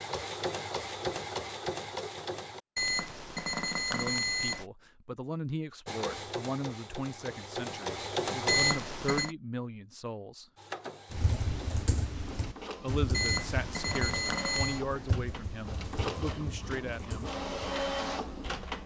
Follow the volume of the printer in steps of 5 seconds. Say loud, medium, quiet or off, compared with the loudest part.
loud, loud, medium, loud.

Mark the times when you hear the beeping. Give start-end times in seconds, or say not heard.
2.8-4.7, 8.4-9.3, 13.1-14.8.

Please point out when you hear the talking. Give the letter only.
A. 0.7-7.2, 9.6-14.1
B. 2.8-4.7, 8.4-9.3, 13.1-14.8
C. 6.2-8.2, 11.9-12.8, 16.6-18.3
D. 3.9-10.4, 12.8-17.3
D.